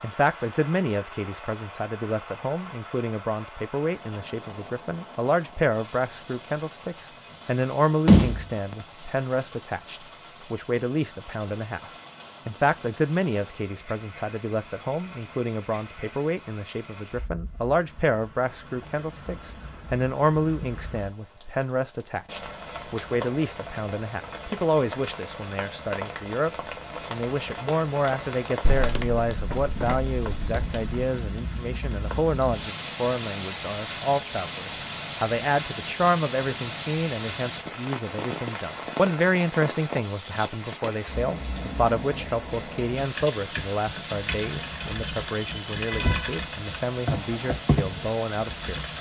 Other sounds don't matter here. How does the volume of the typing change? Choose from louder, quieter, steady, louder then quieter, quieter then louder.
louder.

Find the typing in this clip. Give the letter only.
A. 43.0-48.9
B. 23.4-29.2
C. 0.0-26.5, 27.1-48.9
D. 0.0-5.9
A.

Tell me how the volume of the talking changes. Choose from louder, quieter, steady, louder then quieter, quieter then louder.
steady.